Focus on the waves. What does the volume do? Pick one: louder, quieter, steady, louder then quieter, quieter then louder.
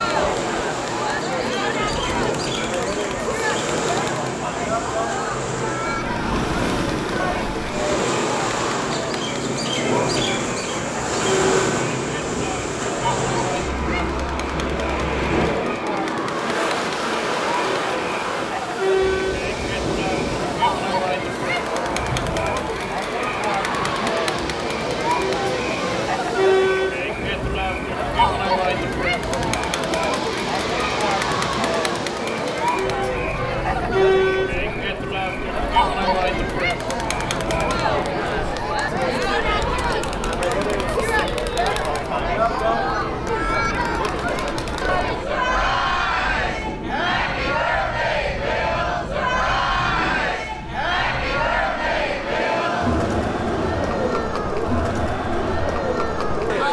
quieter.